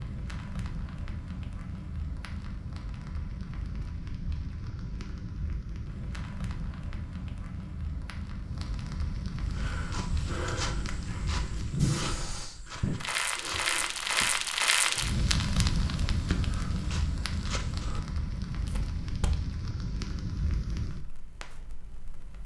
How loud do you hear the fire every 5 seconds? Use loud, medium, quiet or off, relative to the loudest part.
medium, medium, loud, loud, medium.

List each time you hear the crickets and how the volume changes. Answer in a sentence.
The crickets can't be heard in this clip.